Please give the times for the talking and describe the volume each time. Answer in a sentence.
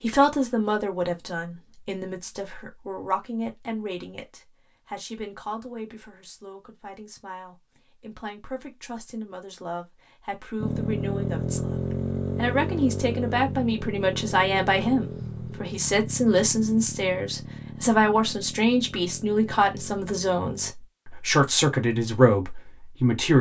You can hear the talking from 0.0 to 23.3 s, getting quieter then louder.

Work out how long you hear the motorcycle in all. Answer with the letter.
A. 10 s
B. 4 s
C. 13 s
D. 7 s
A.